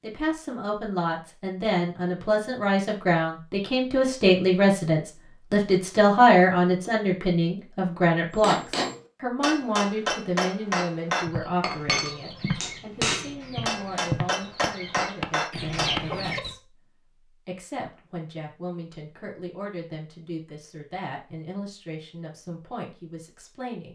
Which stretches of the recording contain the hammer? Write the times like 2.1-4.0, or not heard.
8.3-16.0.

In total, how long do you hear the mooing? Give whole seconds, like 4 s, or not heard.
not heard.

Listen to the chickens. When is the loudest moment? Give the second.
16 s.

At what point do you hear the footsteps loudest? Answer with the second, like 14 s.
14 s.